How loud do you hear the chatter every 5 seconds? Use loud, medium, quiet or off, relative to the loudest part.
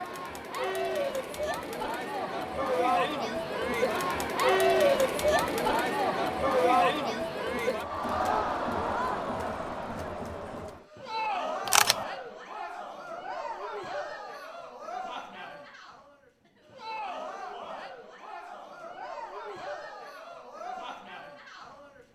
loud, loud, medium, quiet, quiet.